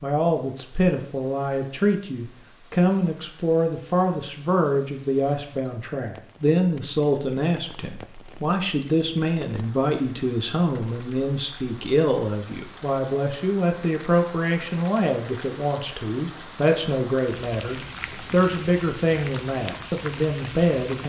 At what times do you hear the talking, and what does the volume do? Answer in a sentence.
The talking can be heard from 0.0 to 21.0 s, at a steady volume.